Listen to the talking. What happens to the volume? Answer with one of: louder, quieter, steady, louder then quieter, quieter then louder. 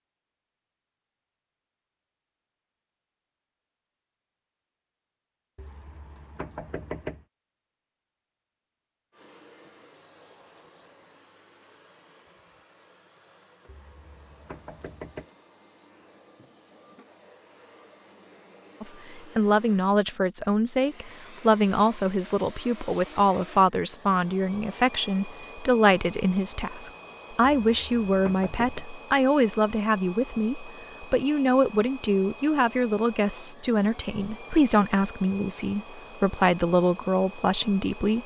steady.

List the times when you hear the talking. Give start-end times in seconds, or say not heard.
18.8-38.2.